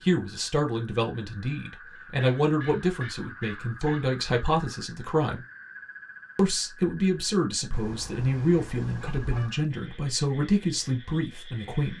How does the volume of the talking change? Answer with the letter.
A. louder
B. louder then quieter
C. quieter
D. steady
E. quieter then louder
D.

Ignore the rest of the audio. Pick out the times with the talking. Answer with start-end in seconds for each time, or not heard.
0.0-5.5, 6.3-11.9.